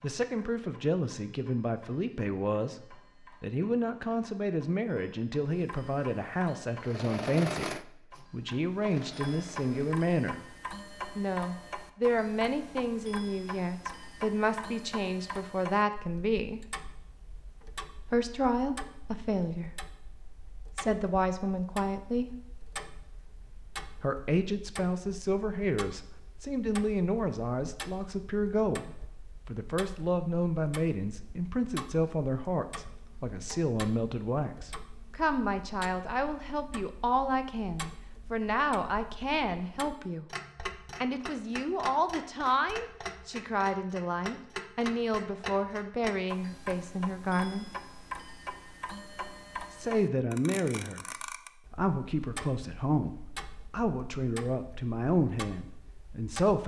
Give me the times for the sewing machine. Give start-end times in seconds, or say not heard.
6.8-10.1.